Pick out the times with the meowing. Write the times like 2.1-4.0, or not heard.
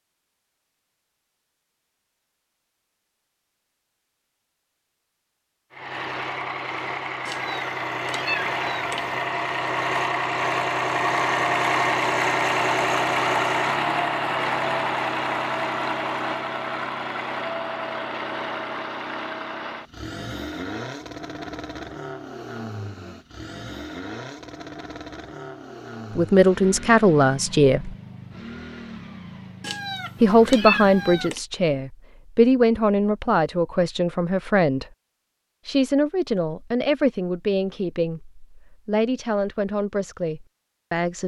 7.2-9.2, 29.6-31.4.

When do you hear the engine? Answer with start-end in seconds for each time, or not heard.
5.7-31.2.